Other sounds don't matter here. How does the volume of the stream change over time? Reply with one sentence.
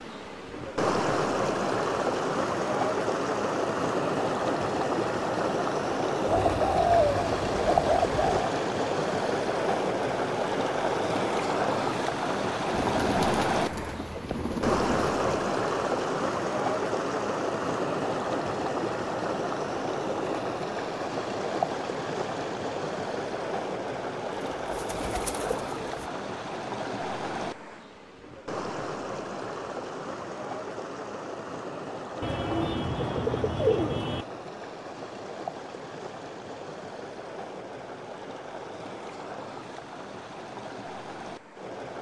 The volume of the stream goes down.